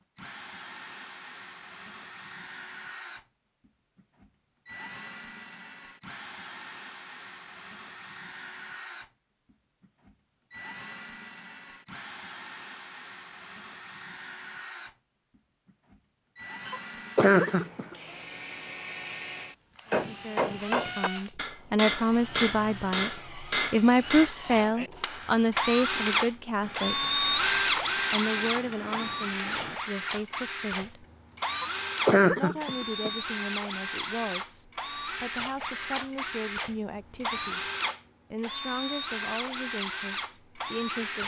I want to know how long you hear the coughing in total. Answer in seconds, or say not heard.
3 s.